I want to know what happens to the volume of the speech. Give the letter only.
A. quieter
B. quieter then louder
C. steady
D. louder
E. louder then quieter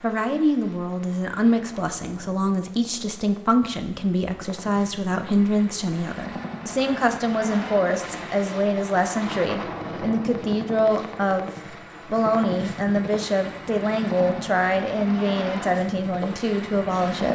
C.